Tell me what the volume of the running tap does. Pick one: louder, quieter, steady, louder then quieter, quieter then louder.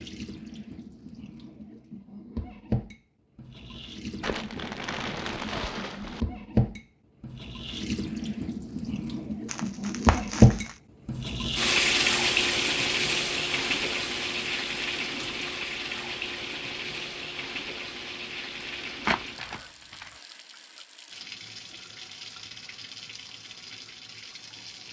louder then quieter.